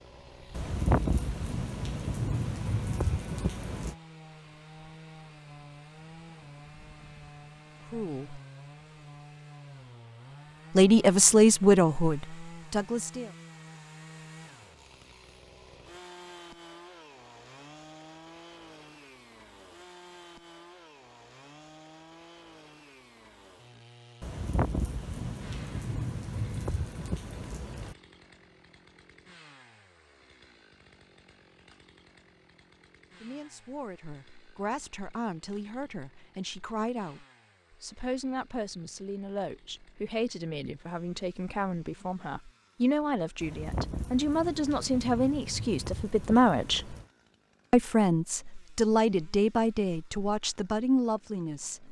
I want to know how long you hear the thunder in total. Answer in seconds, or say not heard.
11 s.